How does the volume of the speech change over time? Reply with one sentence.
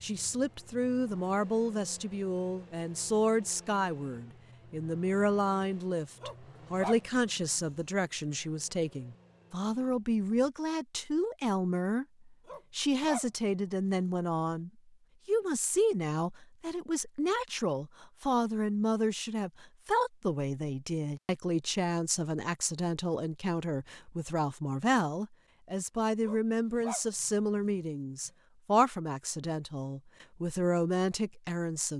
The loudness of the speech stays about the same.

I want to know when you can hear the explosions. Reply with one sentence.
You can't hear the explosions here.